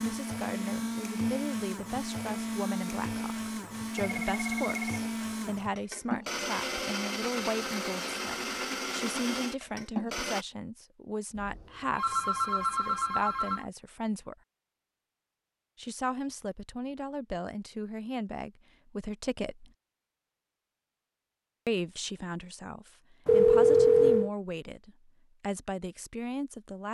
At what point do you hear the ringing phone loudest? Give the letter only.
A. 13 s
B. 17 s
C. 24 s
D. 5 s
C.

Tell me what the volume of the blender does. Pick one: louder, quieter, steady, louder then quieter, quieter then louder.
steady.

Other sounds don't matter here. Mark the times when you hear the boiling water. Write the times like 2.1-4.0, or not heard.
not heard.